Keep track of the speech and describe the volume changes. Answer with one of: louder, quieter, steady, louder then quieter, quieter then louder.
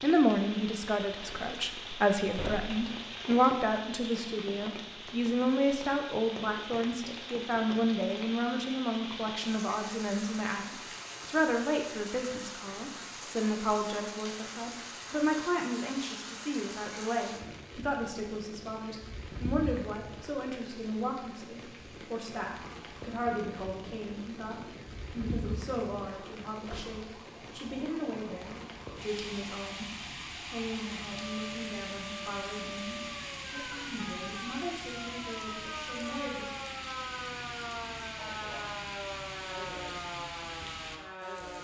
quieter.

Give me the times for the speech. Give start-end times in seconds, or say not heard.
0.0-36.5.